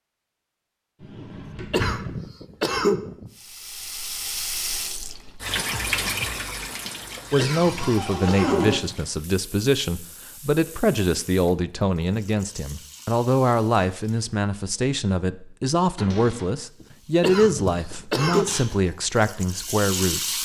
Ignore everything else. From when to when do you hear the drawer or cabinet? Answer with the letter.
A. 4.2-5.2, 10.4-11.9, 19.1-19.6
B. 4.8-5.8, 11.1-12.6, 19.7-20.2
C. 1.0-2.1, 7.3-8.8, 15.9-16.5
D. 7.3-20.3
C.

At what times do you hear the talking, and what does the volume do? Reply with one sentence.
The talking can be heard from 7.3 to 20.3 s, at a steady volume.